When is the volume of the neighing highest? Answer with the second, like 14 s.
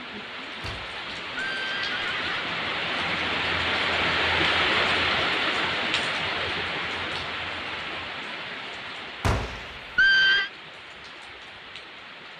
10 s.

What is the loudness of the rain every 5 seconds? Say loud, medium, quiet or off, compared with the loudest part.
loud, loud, quiet.